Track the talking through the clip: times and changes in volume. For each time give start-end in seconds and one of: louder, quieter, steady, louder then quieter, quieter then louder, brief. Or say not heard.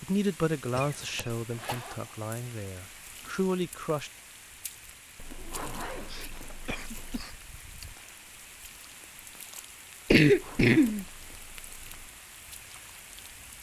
0.0-4.1 quieter then louder.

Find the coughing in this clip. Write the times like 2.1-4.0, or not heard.
0.8-1.8, 5.3-7.3, 10.1-11.1.